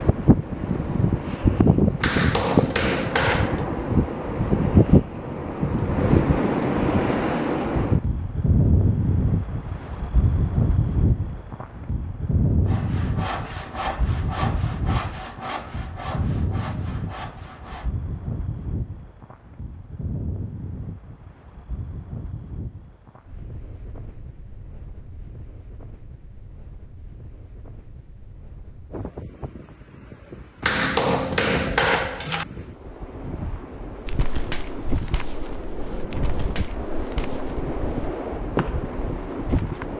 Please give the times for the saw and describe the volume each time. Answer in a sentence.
The saw can be heard from 12.7 to 17.9 s, getting quieter.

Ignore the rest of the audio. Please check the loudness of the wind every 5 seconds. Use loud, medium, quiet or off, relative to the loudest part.
loud, loud, medium, quiet, quiet, quiet, quiet, medium.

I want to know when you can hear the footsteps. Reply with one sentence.
The footsteps can be heard from 34.0 to 39.0 s.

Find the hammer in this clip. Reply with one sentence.
The hammer can be heard from 2.0 to 3.6 s and from 30.6 to 32.5 s.